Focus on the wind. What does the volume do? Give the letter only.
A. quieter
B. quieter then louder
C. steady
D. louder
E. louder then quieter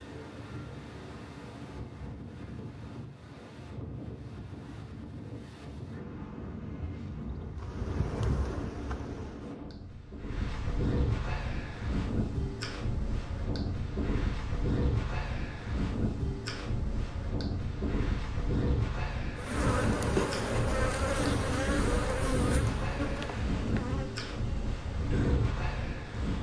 D.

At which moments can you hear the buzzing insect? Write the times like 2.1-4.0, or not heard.
6.0-9.6, 19.4-26.3.